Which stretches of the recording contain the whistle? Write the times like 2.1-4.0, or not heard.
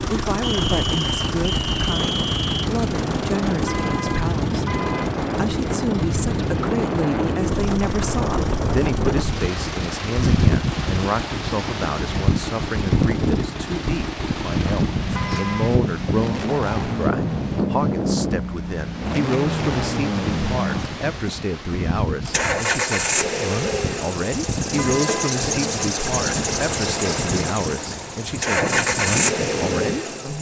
0.4-2.7.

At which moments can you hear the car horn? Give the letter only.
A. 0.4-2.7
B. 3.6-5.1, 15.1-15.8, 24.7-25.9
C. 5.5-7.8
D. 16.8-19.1
B.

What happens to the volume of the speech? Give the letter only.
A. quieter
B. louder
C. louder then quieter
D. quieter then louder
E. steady
E.